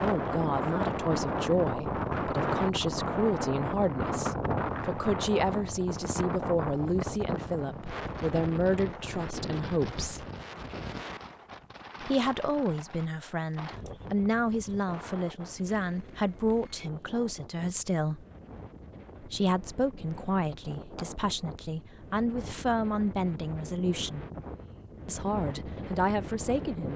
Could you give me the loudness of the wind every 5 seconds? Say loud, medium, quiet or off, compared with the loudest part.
loud, medium, quiet, quiet, quiet, medium.